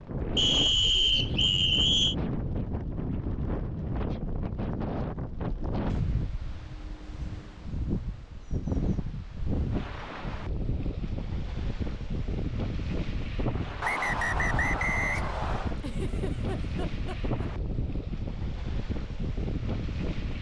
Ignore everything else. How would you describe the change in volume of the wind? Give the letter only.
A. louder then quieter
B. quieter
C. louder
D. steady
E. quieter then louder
D.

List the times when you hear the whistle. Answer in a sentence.
The whistle can be heard from 0.3 to 2.1 s and from 13.8 to 15.8 s.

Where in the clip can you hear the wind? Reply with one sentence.
You can hear the wind from 0.0 to 20.3 s.